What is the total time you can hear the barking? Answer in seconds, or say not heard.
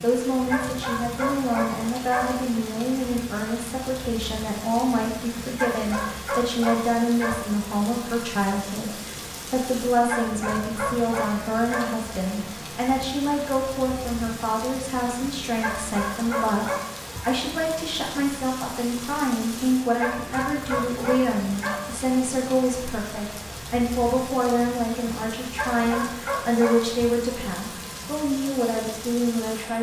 11 s.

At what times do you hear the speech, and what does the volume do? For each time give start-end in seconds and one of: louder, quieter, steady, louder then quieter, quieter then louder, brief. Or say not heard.
0.0-29.7 steady.